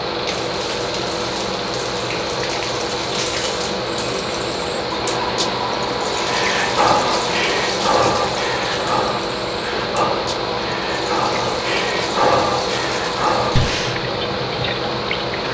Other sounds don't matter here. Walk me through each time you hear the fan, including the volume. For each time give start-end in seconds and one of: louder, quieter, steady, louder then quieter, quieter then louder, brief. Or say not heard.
0.0-15.4 steady.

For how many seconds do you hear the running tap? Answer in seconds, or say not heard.
15 s.